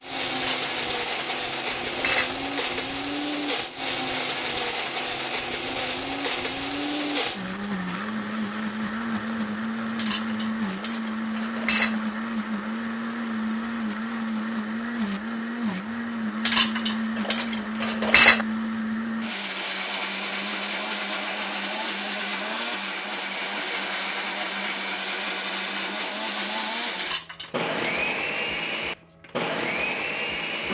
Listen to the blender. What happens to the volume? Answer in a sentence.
The loudness of the blender stays about the same.